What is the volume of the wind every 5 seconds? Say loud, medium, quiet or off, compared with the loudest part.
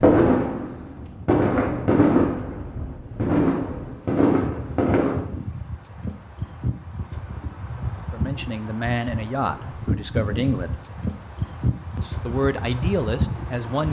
medium, loud, loud.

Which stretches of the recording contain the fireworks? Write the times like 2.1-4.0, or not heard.
0.0-5.2.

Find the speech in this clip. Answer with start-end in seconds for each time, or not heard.
8.1-10.8, 11.9-13.8.